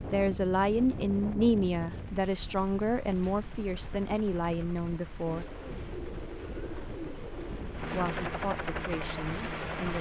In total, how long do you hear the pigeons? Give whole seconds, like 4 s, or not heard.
4 s.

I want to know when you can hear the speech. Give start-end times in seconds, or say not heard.
0.1-5.5, 7.9-9.9.